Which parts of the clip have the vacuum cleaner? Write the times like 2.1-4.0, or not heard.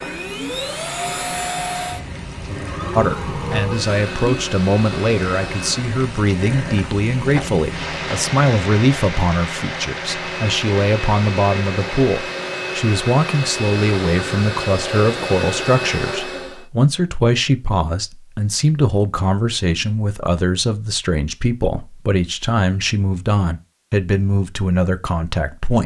0.0-6.0, 10.1-16.6.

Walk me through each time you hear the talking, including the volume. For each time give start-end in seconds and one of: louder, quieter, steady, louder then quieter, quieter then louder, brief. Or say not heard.
3.0-25.8 steady.